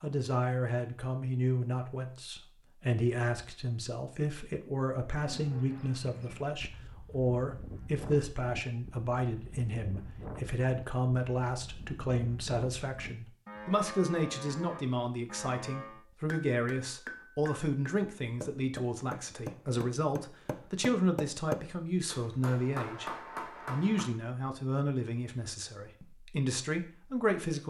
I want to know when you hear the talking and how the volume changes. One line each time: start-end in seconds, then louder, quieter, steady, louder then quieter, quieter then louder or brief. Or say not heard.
0.0-27.6 steady.